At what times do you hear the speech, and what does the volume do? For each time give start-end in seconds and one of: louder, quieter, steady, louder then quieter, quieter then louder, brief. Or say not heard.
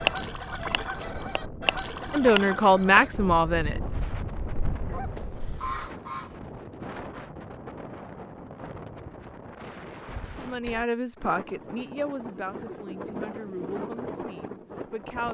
2.1-3.8 brief
10.3-15.2 quieter.